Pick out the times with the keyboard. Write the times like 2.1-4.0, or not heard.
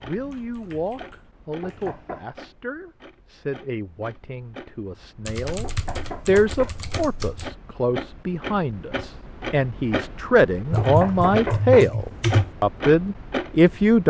0.2-2.0, 5.2-7.5, 10.7-12.5.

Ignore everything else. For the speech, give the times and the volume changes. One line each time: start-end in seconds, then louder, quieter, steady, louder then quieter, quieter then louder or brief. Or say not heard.
0.0-14.0 louder.